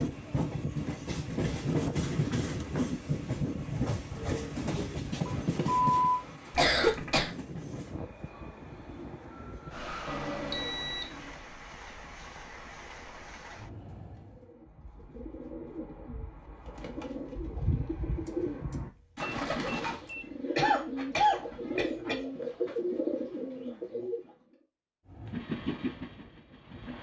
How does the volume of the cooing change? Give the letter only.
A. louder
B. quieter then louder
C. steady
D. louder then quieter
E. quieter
A.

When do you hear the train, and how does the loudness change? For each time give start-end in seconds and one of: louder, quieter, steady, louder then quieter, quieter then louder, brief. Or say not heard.
0.0-14.6 quieter
25.1-26.9 brief.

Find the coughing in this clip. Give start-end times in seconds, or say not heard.
6.5-7.3, 20.6-22.1.